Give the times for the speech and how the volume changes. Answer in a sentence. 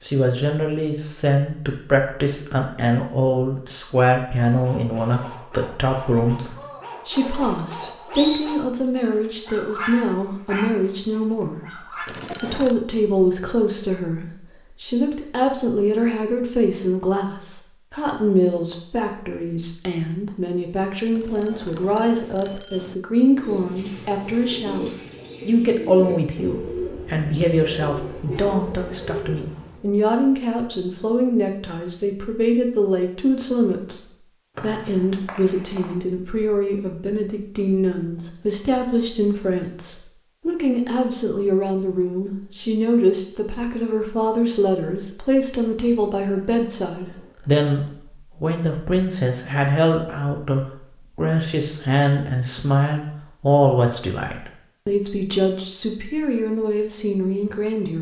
The speech can be heard from 0.0 to 57.9 s, at a steady volume.